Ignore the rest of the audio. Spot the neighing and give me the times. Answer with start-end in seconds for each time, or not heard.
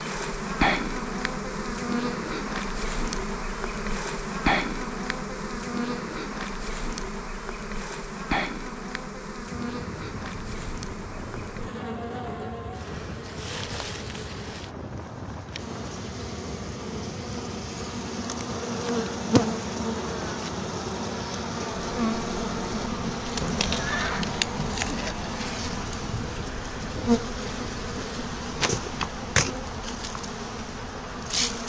23.4-24.3.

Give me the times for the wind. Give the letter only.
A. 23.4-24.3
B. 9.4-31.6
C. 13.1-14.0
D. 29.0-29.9
B.